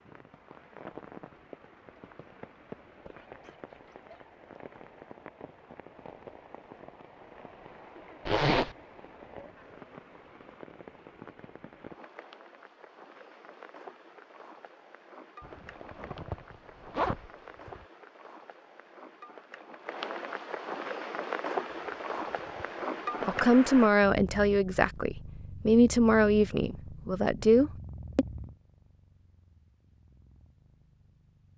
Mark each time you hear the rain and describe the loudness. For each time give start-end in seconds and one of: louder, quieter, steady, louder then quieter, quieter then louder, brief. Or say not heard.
0.0-23.9 louder.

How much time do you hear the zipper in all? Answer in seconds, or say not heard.
5 s.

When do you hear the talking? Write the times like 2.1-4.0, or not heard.
23.2-28.2.